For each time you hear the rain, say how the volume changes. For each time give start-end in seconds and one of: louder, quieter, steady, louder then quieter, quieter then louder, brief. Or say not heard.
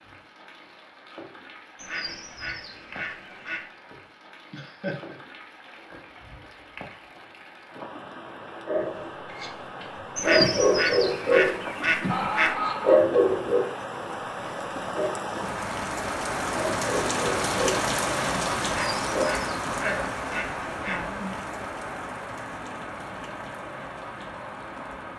0.0-25.1 louder then quieter.